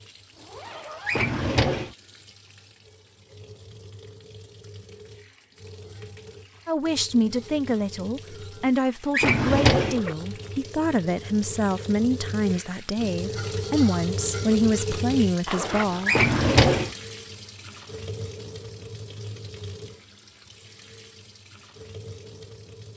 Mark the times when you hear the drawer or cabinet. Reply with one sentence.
The drawer or cabinet can be heard from 1.1 to 1.9 s, from 9.1 to 10.0 s and from 16.1 to 16.9 s.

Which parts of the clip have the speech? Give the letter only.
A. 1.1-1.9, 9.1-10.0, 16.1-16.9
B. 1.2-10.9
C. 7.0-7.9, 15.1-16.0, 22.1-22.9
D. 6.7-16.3
D.